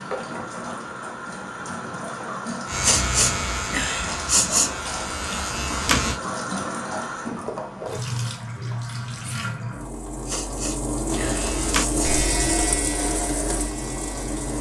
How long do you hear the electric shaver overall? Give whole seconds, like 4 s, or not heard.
7 s.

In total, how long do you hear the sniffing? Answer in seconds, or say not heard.
4 s.